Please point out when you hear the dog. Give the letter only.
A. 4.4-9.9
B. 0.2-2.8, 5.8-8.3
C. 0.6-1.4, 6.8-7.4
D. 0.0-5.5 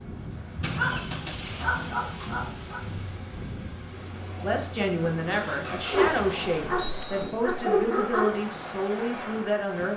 B.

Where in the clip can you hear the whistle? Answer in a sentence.
The whistle can be heard from 0.6 to 1.4 s and from 6.8 to 7.4 s.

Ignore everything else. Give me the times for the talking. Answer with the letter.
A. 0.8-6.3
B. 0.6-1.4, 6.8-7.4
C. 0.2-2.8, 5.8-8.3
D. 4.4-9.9
D.